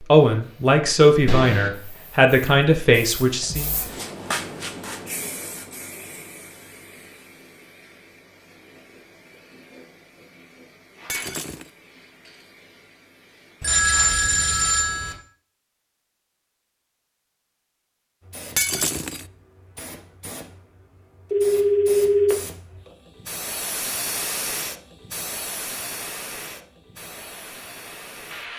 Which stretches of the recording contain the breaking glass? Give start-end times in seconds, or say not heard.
11.1-11.7, 18.6-19.2.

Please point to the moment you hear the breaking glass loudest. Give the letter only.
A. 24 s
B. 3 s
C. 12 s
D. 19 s
D.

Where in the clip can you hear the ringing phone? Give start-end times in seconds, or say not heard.
1.2-1.7, 13.6-15.2, 21.3-22.4.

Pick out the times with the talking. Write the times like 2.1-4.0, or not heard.
0.1-3.7.